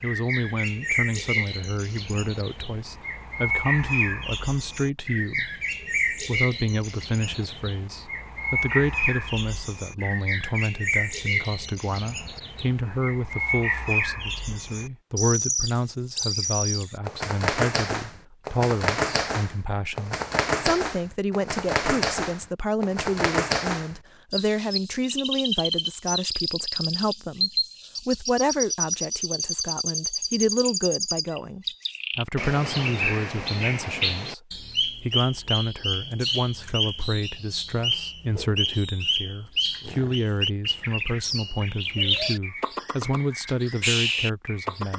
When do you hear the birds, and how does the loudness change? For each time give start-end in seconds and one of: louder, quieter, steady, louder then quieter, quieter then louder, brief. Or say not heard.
0.0-44.9 steady.